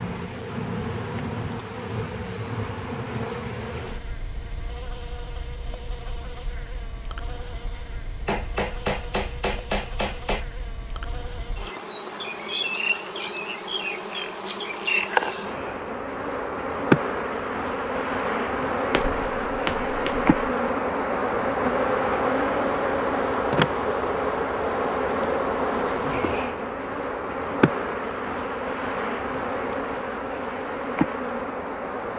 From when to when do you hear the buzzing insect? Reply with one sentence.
You can hear the buzzing insect from 0.0 to 32.1 s.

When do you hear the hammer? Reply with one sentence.
The hammer can be heard from 8.2 to 10.4 s and from 18.9 to 20.2 s.